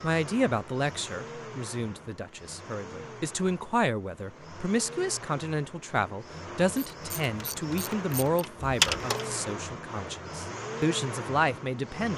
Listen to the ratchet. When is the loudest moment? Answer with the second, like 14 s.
9 s.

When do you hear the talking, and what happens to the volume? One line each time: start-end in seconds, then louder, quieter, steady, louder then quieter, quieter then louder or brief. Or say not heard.
0.0-12.1 steady.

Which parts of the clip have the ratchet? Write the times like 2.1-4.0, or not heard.
6.7-9.2.